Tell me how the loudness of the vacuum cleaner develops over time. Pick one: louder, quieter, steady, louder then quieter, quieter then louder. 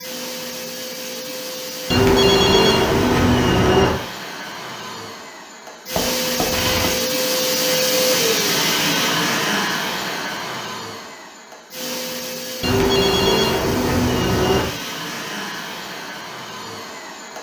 louder then quieter.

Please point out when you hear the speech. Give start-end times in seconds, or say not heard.
not heard.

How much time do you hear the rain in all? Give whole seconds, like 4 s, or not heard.
not heard.